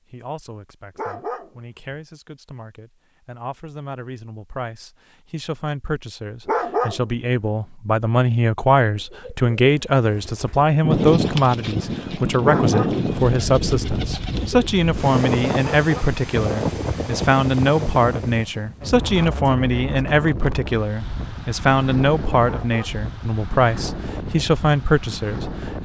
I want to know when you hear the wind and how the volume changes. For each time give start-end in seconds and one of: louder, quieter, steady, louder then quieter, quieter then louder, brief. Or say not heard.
10.8-25.8 quieter.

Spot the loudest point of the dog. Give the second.
7 s.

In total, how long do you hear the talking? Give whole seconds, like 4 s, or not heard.
26 s.